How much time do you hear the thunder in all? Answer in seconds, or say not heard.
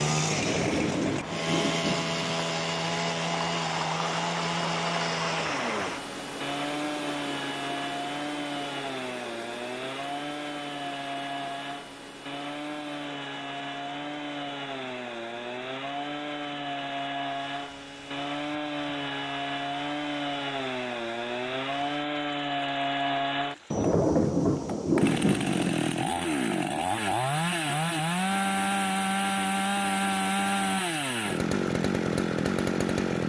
4 s.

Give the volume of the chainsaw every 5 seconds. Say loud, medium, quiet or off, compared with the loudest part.
loud, medium, medium, medium, loud, loud, loud.